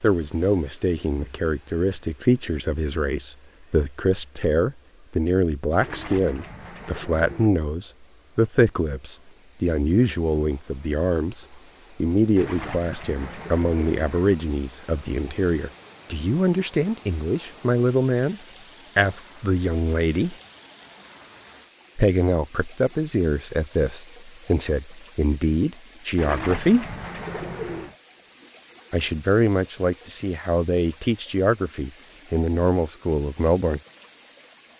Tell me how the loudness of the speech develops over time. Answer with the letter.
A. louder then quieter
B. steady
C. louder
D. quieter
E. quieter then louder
B.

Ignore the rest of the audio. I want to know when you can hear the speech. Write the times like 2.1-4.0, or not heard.
0.0-20.4, 21.9-26.9, 28.9-33.8.